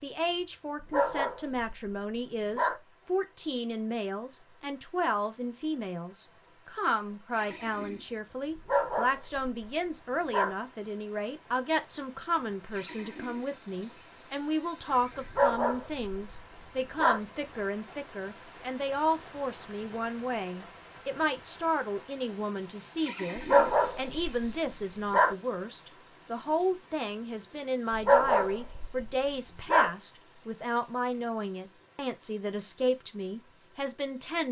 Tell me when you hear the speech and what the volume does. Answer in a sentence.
The speech can be heard from 0.0 to 34.4 s, at a steady volume.